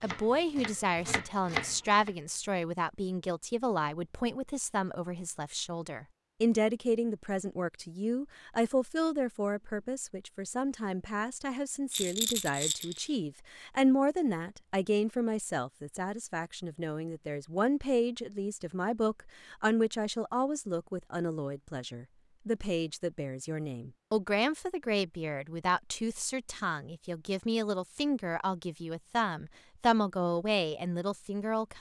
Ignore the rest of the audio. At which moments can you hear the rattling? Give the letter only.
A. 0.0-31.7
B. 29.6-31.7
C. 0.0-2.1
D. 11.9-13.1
D.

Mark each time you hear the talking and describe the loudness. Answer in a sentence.
You can hear the talking from 0.0 to 31.7 s, at a steady volume.